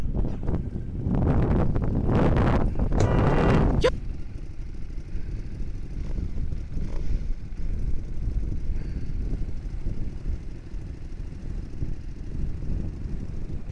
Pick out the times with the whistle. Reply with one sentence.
The whistle can't be heard in this clip.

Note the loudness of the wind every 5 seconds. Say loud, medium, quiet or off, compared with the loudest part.
loud, quiet, quiet.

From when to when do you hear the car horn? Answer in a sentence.
You can hear the car horn from 3.0 to 3.9 s.